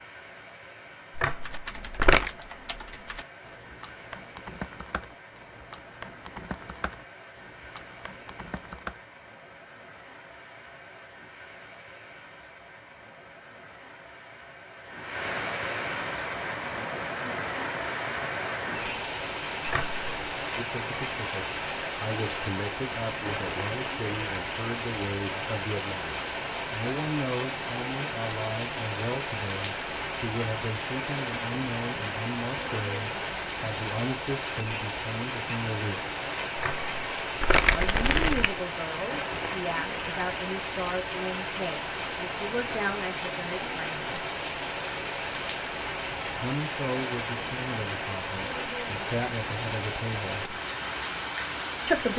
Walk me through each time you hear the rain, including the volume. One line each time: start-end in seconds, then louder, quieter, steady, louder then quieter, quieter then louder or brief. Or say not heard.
0.0-52.1 louder.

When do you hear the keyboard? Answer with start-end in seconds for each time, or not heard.
1.2-9.0.